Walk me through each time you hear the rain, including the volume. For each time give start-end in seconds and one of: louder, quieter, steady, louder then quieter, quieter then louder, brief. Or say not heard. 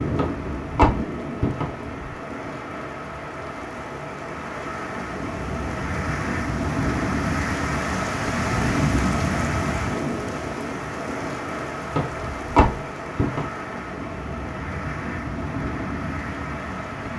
0.0-17.1 louder then quieter.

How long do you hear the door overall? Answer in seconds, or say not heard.
3 s.